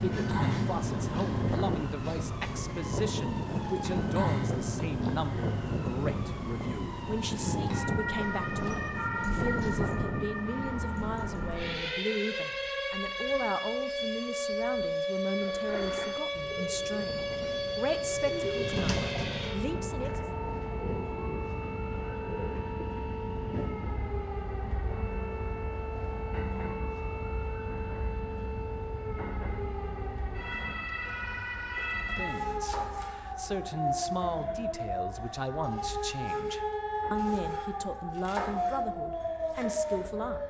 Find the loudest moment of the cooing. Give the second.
19 s.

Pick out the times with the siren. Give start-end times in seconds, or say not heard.
0.0-40.4.